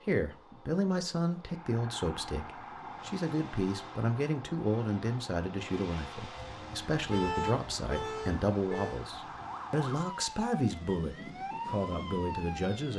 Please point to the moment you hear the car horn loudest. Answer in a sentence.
The loudest moment of the car horn is at 7 seconds.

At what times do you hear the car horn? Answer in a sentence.
You can hear the car horn from 6.3 to 9.1 s.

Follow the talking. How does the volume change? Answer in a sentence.
The volume of the talking stays about the same.